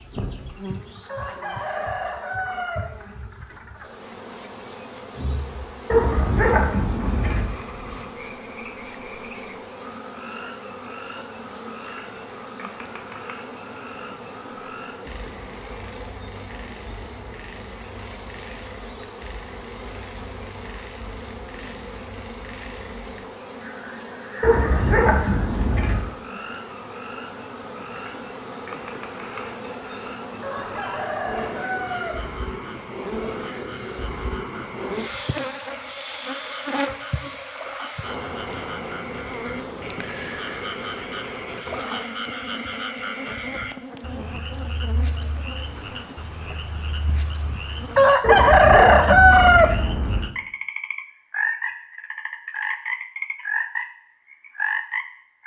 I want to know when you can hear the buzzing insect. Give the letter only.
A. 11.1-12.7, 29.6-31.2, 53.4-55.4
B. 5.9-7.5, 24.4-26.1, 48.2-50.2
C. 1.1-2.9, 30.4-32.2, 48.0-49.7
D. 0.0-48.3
D.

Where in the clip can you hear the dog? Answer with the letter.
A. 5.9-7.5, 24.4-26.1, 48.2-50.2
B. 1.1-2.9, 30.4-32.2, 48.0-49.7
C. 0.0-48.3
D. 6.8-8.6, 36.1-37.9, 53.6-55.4
A.